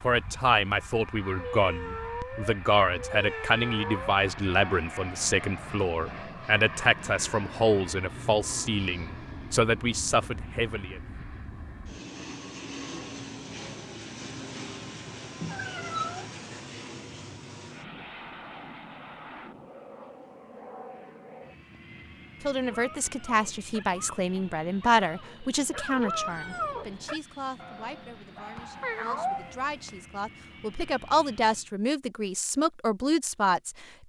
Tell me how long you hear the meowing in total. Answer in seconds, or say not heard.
5 s.